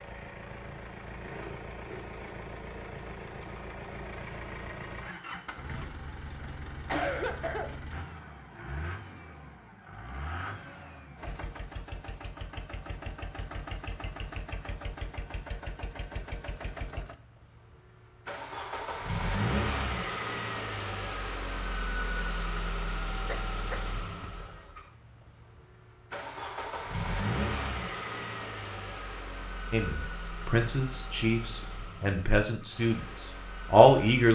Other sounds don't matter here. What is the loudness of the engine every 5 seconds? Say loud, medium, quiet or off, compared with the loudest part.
medium, medium, medium, loud, loud, loud, medium.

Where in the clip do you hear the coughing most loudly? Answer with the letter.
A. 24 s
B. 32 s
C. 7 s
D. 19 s
C.